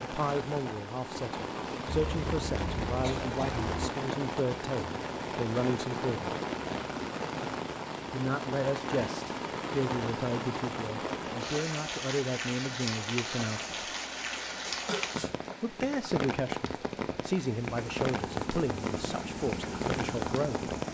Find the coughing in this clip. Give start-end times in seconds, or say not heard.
1.9-3.9, 14.8-15.6.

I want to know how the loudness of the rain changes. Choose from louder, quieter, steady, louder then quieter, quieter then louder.
steady.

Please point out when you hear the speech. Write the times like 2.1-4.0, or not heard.
0.0-6.3, 8.1-13.9, 15.6-20.8.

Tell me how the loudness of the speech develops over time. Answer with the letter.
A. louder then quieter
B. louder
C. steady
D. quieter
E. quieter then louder
C.